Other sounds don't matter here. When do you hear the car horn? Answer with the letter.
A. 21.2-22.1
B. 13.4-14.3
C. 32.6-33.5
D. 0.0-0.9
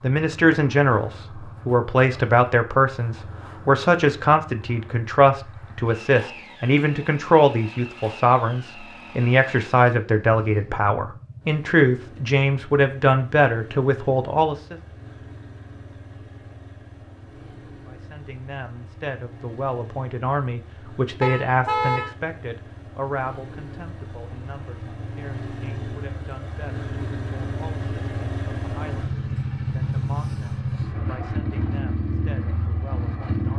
A.